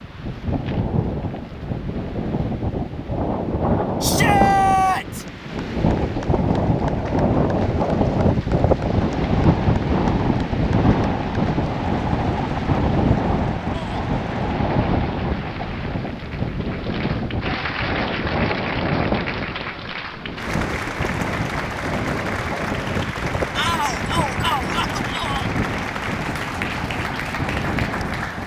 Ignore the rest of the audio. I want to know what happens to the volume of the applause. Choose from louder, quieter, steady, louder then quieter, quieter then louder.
louder.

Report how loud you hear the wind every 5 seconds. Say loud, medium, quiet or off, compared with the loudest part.
loud, loud, loud, medium, medium, medium.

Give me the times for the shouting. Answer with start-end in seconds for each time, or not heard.
4.0-5.2, 13.7-14.1, 23.6-25.5.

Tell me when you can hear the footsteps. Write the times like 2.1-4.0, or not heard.
not heard.